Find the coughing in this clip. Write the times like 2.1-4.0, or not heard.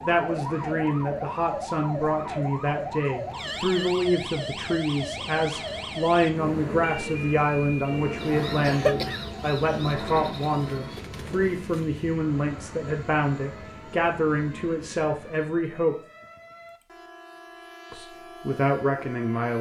8.6-9.8.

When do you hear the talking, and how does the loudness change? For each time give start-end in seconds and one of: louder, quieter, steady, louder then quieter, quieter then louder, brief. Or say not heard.
0.0-15.9 steady
17.9-19.5 brief.